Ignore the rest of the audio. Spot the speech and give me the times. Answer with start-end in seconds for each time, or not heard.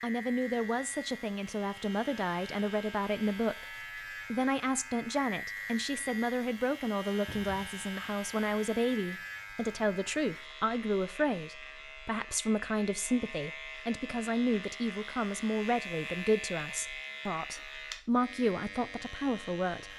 0.0-19.9.